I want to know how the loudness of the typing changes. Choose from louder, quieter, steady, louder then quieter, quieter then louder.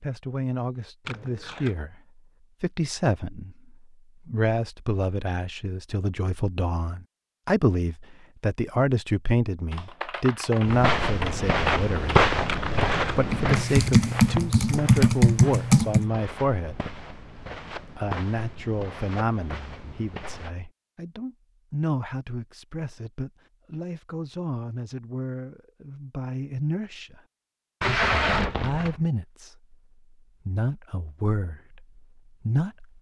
louder.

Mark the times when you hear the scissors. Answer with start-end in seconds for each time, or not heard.
not heard.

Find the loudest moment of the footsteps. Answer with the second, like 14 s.
12 s.